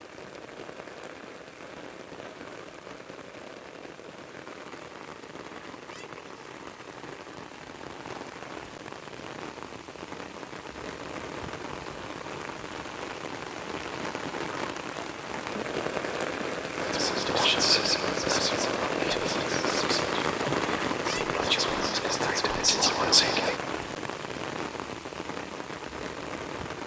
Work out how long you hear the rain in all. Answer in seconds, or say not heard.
27 s.